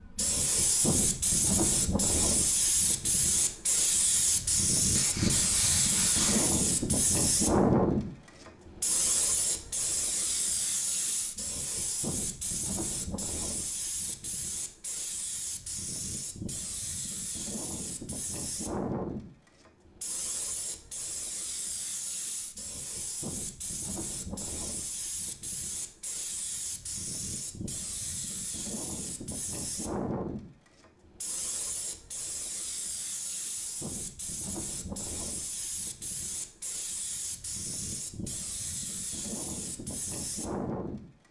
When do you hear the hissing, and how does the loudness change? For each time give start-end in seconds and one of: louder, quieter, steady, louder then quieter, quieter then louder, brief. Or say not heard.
0.0-41.1 quieter.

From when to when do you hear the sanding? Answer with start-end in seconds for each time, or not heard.
5.0-6.5.